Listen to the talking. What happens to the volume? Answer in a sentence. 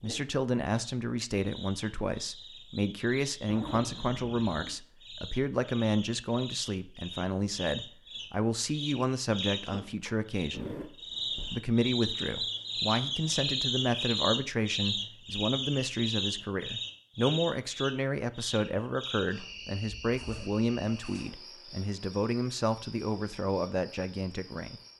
The volume of the talking stays about the same.